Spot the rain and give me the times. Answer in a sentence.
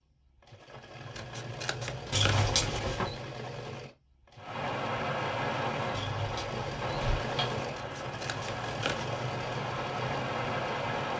You can hear the rain from 4.3 to 11.1 s.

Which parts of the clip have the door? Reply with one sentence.
You can hear the door from 2.1 to 3.1 s and from 5.9 to 7.7 s.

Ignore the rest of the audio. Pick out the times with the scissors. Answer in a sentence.
The scissors can be heard from 1.1 to 2.5 s and from 7.8 to 9.2 s.